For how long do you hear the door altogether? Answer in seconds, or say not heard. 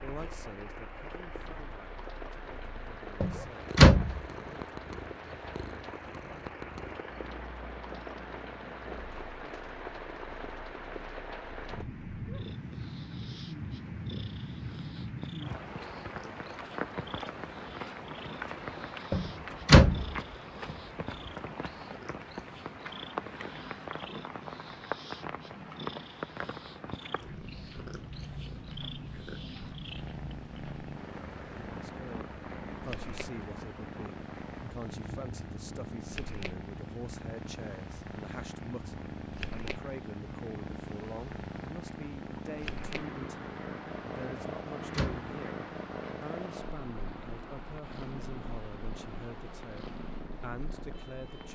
3 s.